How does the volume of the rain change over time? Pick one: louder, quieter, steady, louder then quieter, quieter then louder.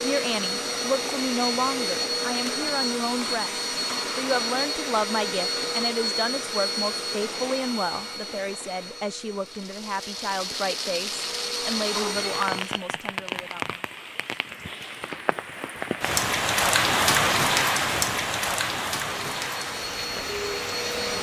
louder then quieter.